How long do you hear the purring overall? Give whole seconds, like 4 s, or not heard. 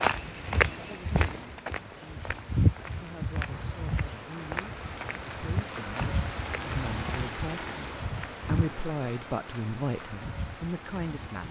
not heard.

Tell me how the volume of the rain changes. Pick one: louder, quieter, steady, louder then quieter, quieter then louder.
louder then quieter.